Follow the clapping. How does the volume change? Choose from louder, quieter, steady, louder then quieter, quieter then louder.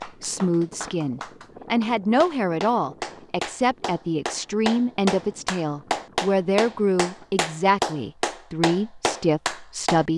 louder.